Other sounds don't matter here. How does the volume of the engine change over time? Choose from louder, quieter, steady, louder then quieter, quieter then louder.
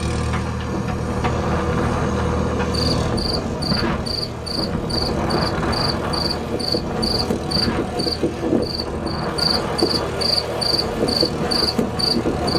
quieter.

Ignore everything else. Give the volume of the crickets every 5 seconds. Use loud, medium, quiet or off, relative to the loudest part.
medium, loud, loud.